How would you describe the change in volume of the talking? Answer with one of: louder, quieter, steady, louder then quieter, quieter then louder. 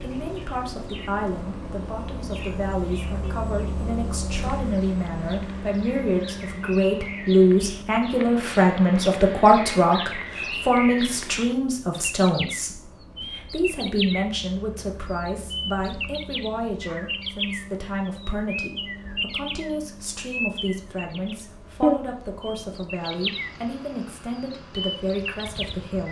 louder then quieter.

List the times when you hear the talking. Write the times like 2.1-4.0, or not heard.
0.0-26.0.